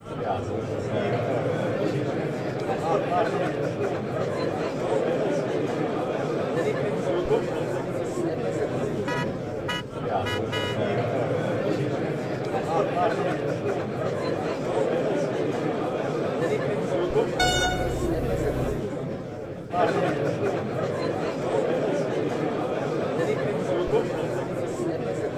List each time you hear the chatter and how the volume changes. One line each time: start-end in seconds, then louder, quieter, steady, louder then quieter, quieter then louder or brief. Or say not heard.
0.0-25.3 steady.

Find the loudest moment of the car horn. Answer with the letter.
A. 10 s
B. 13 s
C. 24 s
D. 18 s
D.